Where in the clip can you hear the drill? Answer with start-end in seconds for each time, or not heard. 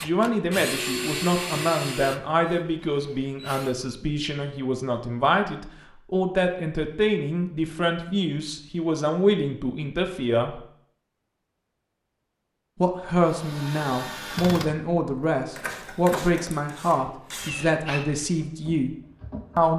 0.0-3.8, 13.2-19.7.